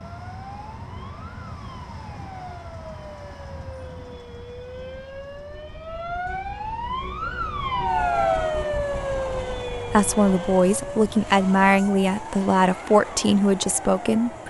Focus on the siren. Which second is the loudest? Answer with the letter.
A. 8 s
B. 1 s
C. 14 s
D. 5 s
A.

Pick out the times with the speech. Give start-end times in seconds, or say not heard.
9.9-14.4.